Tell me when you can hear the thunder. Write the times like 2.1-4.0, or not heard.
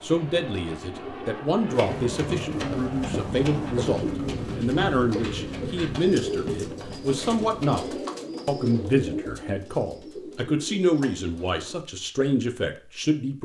not heard.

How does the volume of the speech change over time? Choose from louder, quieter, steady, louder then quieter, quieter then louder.
steady.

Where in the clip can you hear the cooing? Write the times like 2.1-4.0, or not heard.
2.5-11.8.